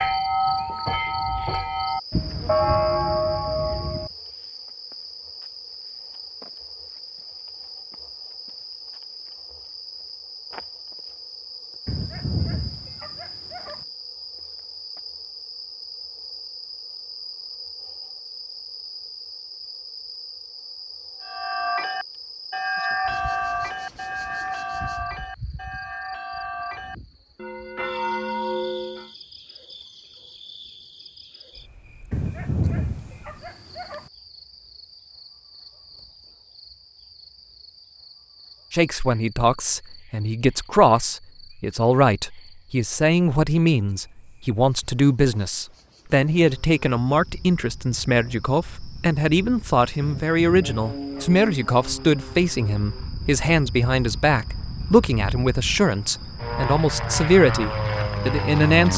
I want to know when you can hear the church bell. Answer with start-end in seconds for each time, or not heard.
0.0-4.1, 21.2-29.1.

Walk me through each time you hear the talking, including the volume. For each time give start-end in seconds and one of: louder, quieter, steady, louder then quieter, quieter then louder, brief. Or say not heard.
38.7-58.9 steady.